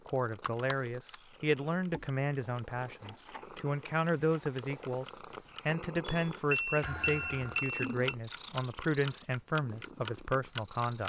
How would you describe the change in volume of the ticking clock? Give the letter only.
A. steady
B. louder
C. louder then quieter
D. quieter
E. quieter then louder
B.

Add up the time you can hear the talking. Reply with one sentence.
The talking can be heard for 10 seconds in total.